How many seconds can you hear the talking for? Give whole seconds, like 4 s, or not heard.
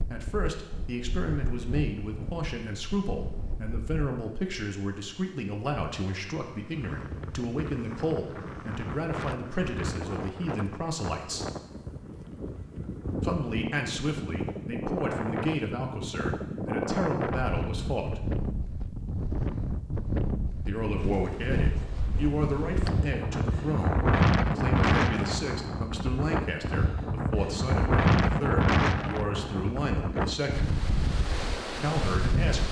27 s.